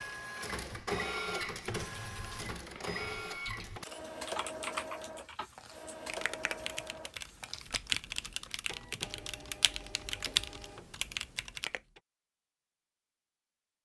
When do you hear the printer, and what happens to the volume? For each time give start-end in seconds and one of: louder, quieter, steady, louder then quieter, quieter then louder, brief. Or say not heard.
0.0-12.0 quieter.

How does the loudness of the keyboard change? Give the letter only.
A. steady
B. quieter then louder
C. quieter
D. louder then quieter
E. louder
E.